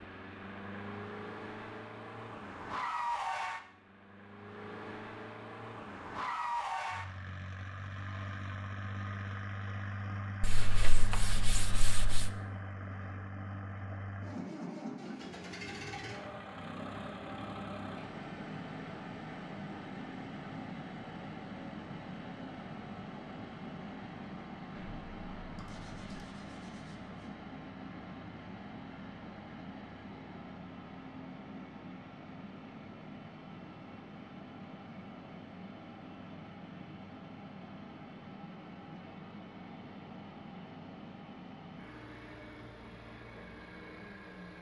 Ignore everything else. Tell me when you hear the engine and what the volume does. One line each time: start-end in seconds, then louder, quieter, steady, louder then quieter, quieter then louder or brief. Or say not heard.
0.0-44.5 quieter.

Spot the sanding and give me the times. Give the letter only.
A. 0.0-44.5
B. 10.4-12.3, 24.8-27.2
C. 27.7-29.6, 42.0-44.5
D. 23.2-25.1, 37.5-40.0
B.